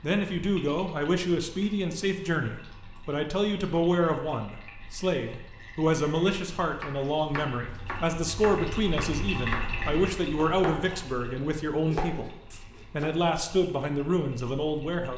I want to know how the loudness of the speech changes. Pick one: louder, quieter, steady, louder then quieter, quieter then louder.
steady.